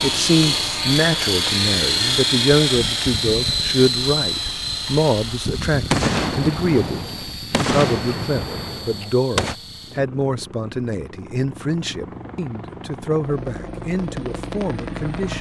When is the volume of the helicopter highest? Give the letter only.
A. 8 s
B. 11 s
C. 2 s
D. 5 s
C.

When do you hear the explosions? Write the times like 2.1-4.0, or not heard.
5.9-9.6.